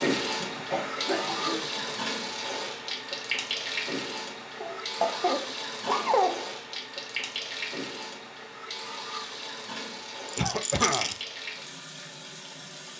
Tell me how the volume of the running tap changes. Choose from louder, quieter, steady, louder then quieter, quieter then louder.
quieter.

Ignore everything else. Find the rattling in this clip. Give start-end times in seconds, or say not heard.
10.2-11.2.